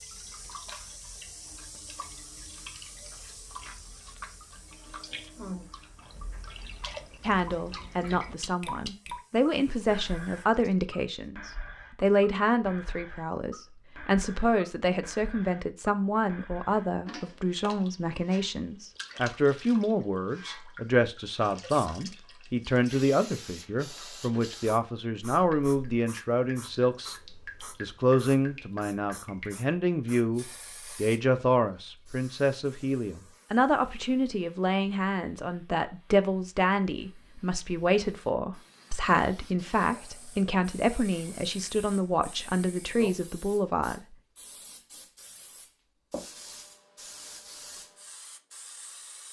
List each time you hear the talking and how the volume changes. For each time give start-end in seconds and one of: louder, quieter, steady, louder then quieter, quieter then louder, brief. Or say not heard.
7.2-27.1 steady
27.8-44.0 steady.